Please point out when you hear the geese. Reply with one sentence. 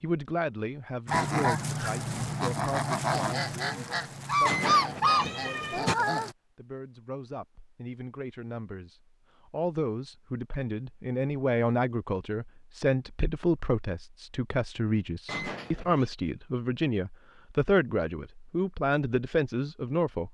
You can hear the geese from 1.1 to 6.3 s.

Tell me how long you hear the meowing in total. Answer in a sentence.
You can hear the meowing for 2 seconds altogether.